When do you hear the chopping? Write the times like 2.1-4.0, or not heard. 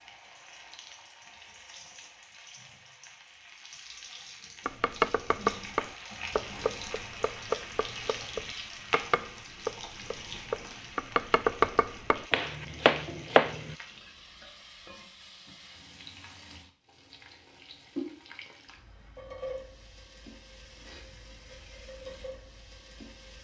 4.7-13.8.